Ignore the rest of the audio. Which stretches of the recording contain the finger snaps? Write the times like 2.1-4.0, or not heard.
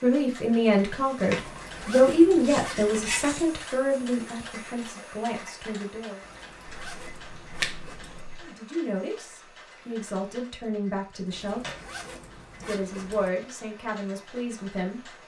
6.7-8.5.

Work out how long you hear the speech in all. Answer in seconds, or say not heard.
12 s.